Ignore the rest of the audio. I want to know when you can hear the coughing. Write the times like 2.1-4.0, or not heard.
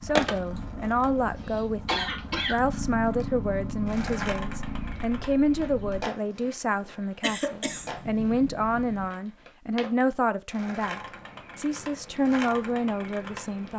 0.6-2.6, 7.2-7.9.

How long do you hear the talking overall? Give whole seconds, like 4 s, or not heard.
14 s.